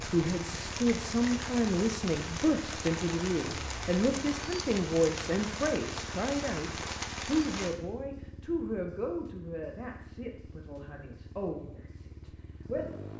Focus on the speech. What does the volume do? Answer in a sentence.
The volume of the speech goes down.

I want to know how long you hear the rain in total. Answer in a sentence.
You can hear the rain for 8 seconds altogether.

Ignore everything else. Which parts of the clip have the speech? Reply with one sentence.
You can hear the speech from 0.0 to 13.1 s.